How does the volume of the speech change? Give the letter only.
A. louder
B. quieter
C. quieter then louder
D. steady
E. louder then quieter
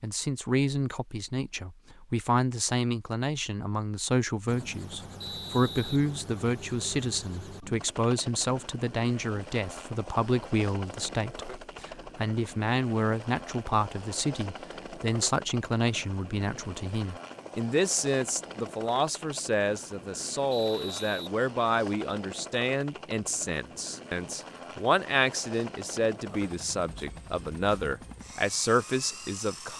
D.